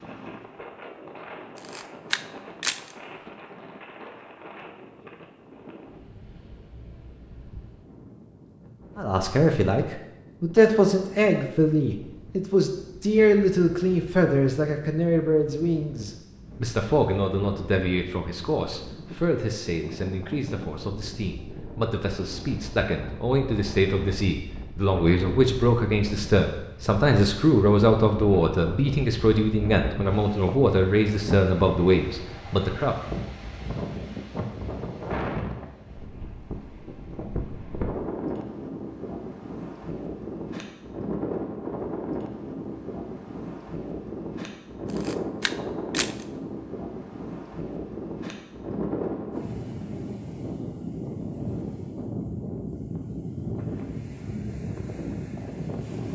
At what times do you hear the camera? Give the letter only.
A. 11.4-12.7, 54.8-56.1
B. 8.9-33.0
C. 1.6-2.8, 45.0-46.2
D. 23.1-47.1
C.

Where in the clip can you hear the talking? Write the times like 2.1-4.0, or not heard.
8.9-33.0.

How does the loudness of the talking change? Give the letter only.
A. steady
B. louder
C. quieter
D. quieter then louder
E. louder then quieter
D.